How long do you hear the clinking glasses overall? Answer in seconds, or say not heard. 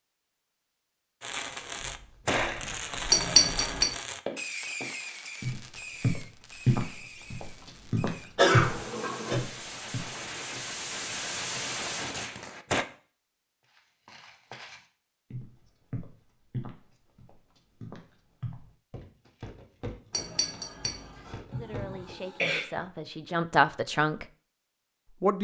2 s.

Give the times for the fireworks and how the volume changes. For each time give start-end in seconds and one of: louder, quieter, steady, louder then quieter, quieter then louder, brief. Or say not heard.
1.2-12.8 quieter then louder.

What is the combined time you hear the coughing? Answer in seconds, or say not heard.
2 s.